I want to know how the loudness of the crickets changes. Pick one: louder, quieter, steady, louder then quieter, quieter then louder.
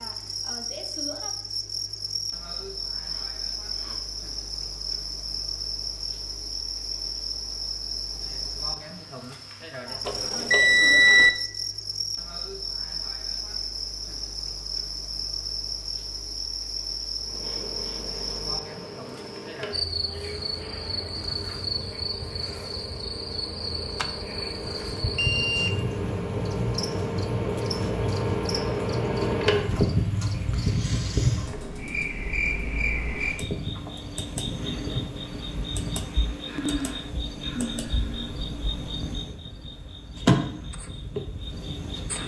steady.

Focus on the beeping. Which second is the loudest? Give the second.
11 s.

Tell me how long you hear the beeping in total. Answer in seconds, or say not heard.
3 s.